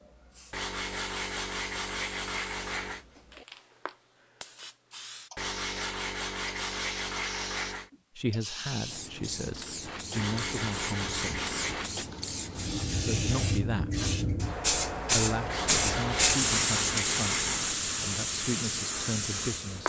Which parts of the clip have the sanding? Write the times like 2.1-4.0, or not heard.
0.5-3.0, 5.3-7.9, 10.2-11.9, 15.4-17.6.